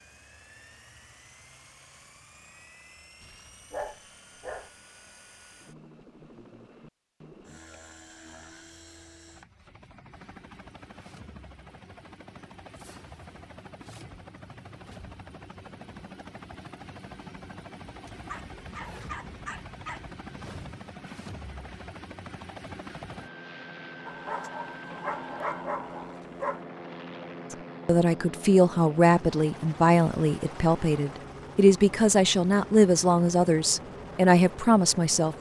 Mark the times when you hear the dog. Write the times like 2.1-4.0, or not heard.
3.0-4.7, 18.2-20.1, 24.1-26.6.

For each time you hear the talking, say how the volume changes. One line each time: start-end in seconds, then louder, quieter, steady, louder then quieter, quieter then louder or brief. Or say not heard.
27.5-35.3 steady.